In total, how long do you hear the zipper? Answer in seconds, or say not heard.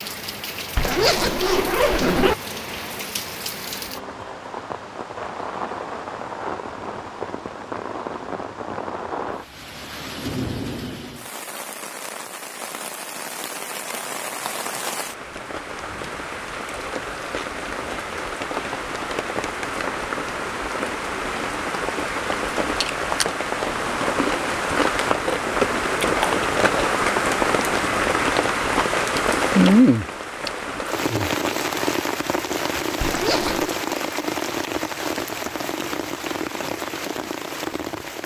2 s.